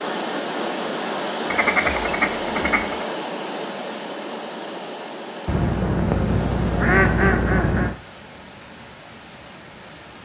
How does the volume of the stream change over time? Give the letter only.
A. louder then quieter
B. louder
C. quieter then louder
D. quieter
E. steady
D.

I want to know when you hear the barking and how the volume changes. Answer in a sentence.
The barking can't be heard in this clip.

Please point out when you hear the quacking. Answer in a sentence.
The quacking can be heard from 1.5 to 3.0 s and from 5.5 to 8.0 s.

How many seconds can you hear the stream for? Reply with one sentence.
You can hear the stream for 10 seconds altogether.